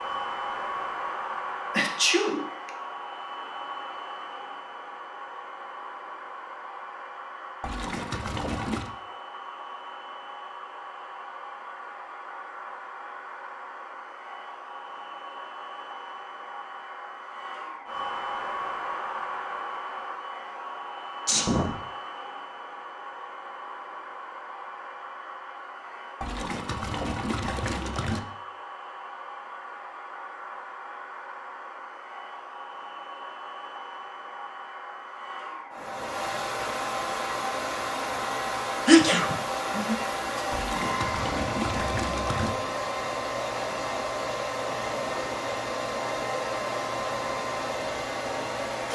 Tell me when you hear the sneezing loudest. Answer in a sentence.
The volume of the sneezing peaks at 39 seconds.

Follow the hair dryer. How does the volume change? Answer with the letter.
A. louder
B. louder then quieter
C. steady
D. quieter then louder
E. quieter
A.